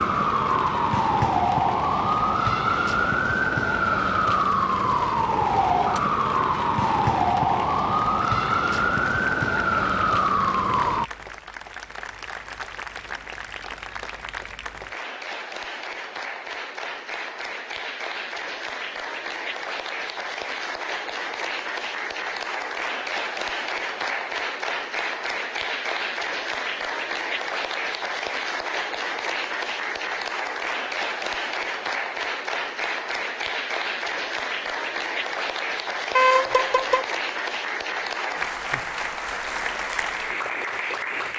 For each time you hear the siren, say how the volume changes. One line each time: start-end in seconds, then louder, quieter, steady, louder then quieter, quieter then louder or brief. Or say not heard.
0.0-11.1 steady.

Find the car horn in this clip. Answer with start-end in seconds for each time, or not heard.
36.1-37.0.